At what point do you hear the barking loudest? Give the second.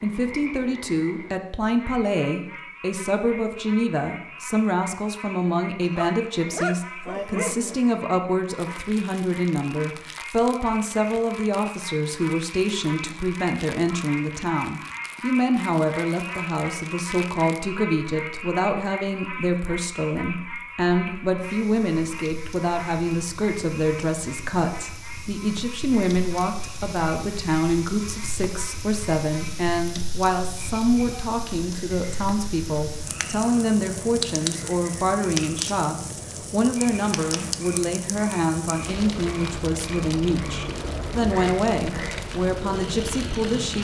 7 s.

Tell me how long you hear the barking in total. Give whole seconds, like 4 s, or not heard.
2 s.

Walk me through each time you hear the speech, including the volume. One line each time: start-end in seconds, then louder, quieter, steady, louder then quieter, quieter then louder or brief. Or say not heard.
0.0-43.7 steady.